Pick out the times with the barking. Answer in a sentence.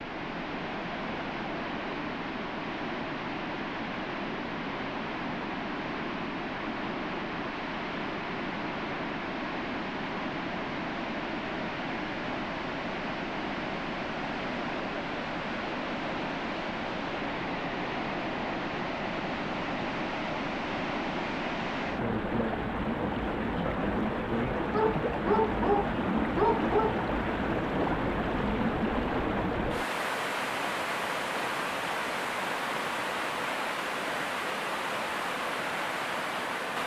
The barking can be heard from 24.6 to 26.9 s.